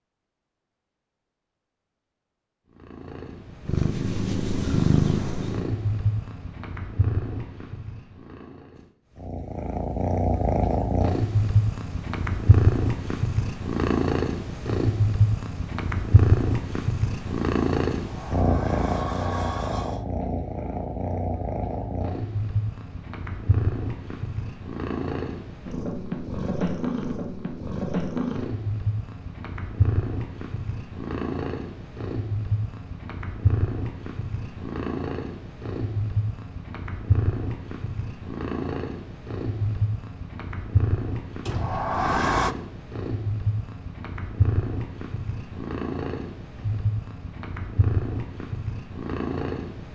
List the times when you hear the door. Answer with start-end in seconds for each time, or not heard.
17.9-20.1, 41.5-42.5.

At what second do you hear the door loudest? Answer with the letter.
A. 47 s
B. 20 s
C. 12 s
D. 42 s
D.